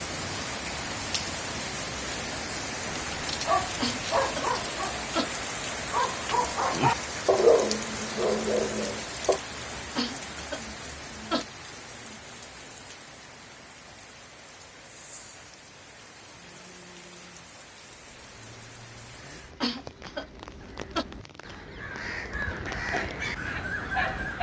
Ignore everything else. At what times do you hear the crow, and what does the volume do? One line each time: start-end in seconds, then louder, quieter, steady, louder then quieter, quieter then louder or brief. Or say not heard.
18.0-24.3 louder.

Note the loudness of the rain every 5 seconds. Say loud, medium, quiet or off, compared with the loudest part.
loud, loud, medium, quiet, medium.